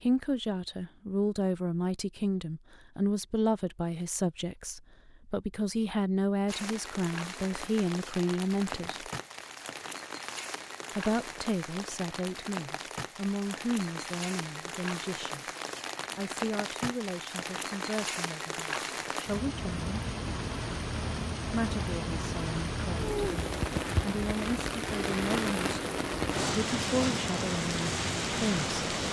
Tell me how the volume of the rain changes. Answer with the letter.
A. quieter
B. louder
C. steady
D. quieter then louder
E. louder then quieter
B.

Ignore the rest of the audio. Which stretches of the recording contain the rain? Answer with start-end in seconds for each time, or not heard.
6.5-29.0.